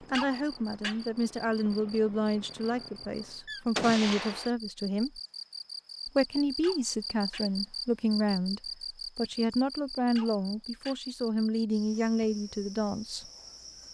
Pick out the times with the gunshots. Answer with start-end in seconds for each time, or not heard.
3.5-4.5.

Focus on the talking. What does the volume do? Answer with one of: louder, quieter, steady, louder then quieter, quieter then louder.
steady.